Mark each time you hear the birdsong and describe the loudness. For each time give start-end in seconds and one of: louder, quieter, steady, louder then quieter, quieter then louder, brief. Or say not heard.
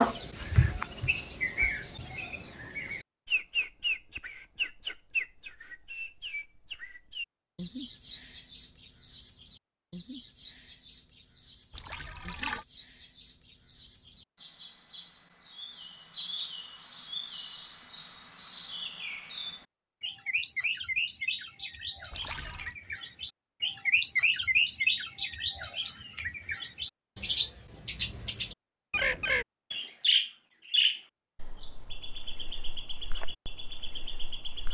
0.0-34.6 quieter then louder.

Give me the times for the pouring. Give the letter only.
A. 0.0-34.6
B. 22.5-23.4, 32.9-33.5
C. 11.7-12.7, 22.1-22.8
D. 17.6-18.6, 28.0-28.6
C.